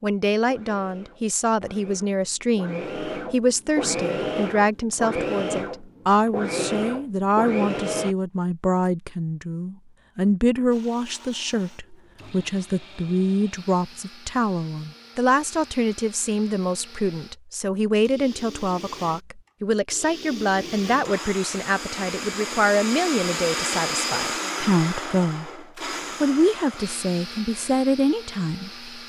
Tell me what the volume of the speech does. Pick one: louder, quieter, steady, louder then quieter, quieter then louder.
steady.